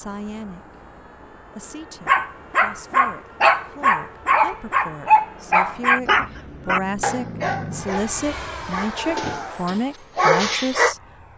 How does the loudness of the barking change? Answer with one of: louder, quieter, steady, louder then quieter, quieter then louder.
quieter then louder.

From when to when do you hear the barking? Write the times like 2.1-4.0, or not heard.
2.0-10.9.